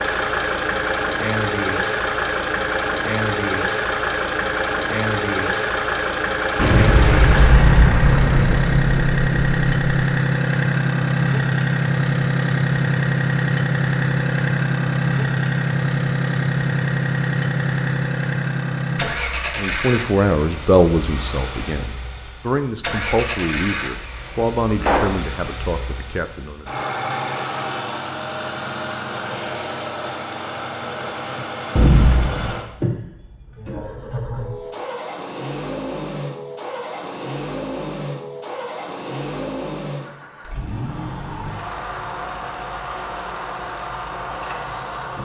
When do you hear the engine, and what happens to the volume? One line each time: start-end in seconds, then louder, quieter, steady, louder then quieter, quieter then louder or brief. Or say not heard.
0.0-45.1 quieter.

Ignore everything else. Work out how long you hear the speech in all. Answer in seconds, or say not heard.
7 s.